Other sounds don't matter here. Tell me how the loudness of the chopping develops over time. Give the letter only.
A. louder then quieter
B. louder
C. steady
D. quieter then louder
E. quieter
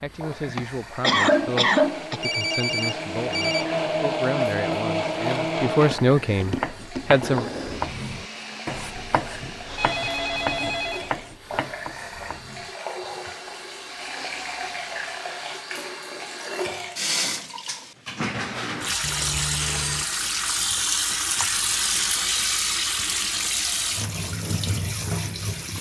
E.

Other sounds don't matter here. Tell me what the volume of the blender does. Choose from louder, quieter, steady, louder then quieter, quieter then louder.
louder then quieter.